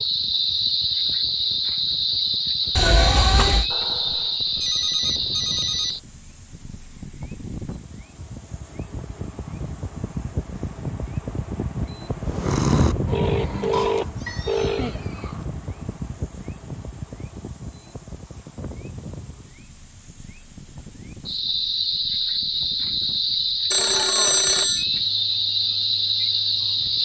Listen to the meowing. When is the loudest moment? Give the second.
3 s.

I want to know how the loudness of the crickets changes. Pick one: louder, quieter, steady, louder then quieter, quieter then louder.
quieter then louder.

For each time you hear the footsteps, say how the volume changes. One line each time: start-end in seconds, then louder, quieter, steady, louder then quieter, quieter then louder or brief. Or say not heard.
not heard.